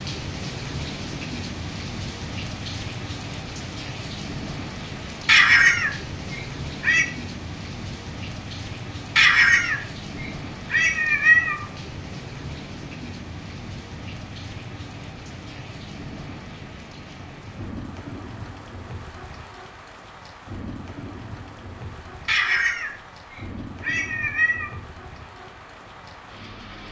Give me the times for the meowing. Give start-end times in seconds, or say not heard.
5.2-7.0, 9.2-11.7, 22.2-24.8.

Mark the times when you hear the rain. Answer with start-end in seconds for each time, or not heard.
0.0-26.8.